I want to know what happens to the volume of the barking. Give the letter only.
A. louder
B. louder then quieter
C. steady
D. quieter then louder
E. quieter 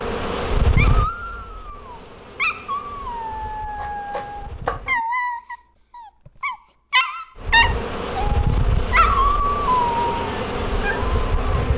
A.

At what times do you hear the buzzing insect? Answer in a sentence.
The buzzing insect can be heard from 0.0 to 5.0 s and from 7.3 to 11.7 s.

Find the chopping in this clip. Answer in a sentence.
You can hear the chopping from 3.8 to 5.0 s.